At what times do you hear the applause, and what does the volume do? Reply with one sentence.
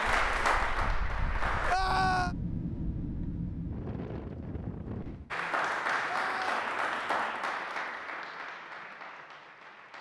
You can hear the applause briefly from 0.0 to 1.8 s; and from 5.3 to 9.9 s, getting quieter.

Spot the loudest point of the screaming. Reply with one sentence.
The volume of the screaming peaks at 2 seconds.